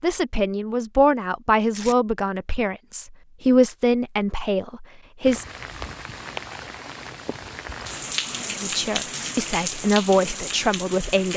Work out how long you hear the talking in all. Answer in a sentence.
You can hear the talking for 8 seconds altogether.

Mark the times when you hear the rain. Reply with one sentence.
You can hear the rain from 5.2 to 11.3 s.